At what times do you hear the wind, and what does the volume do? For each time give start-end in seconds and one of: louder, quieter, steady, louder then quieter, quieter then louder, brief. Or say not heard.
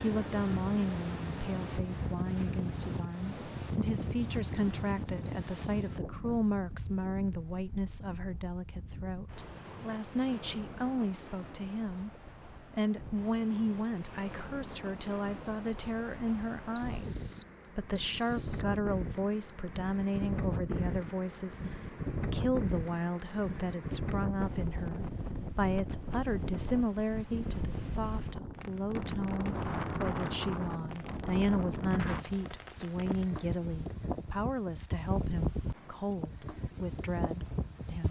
0.0-38.0 quieter then louder.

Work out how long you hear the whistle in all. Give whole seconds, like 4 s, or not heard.
2 s.